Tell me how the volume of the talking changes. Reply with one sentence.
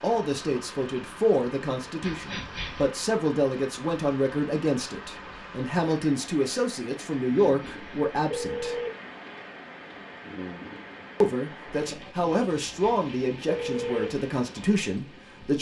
The loudness of the talking stays about the same.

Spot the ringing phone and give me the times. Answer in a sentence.
You can hear the ringing phone from 2.0 to 2.9 s, from 7.1 to 8.9 s and from 12.3 to 14.1 s.